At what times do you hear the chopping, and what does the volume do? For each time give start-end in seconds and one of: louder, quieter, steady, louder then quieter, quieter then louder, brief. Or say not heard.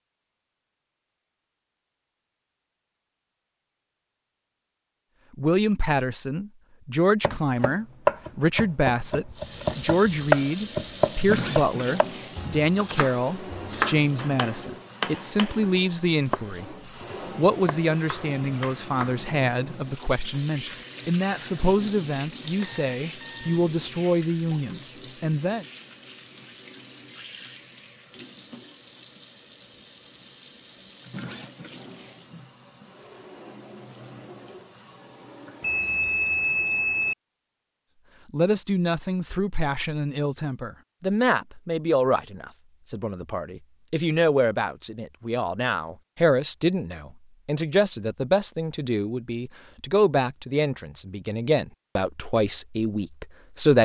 7.2-19.2 quieter.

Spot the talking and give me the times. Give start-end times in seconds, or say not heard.
5.3-16.6, 17.4-25.6, 38.3-53.8.